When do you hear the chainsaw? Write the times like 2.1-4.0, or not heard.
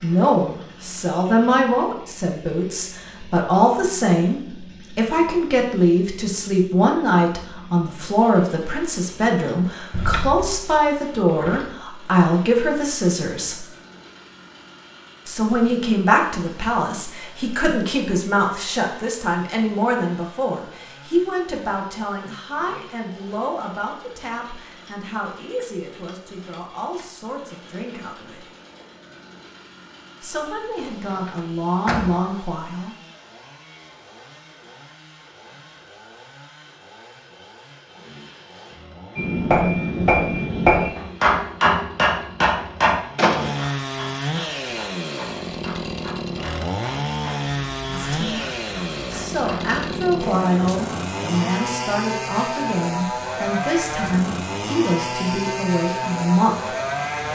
0.0-57.3.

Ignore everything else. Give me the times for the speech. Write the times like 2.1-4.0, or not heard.
0.0-13.7, 15.2-28.4, 30.2-33.0, 47.9-48.4, 49.1-56.8.